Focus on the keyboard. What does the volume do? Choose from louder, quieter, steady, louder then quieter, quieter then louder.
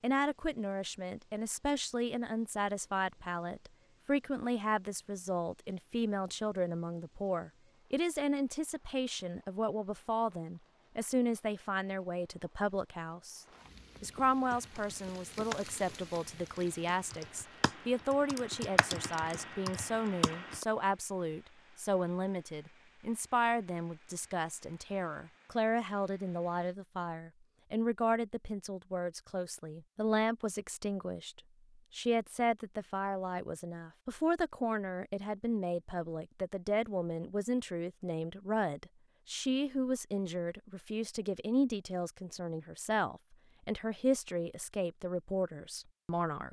quieter then louder.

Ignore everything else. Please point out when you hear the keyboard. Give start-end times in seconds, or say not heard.
14.5-20.6.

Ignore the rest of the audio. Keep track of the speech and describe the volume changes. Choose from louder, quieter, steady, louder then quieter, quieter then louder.
steady.